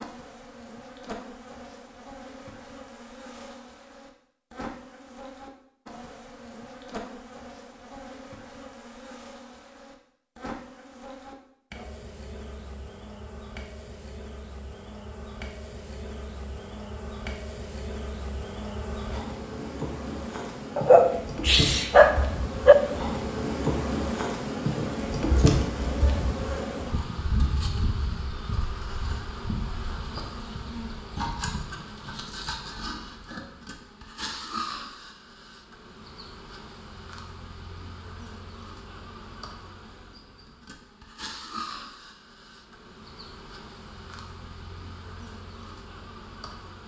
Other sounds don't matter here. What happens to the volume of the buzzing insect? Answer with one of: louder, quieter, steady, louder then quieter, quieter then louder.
louder then quieter.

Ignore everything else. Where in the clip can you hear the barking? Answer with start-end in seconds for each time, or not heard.
20.8-22.8.